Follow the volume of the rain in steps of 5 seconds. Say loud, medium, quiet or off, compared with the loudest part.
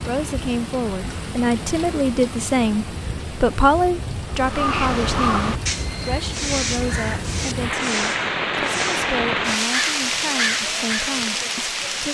medium, loud, loud.